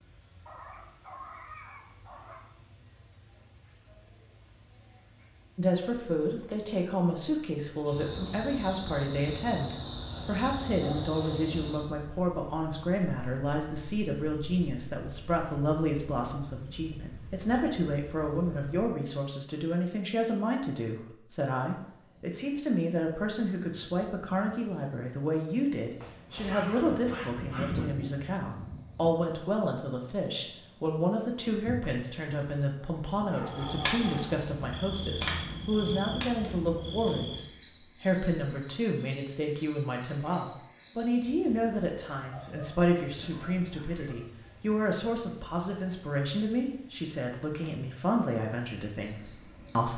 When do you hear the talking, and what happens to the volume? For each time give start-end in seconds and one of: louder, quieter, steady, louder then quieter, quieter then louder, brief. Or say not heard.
5.5-49.9 steady.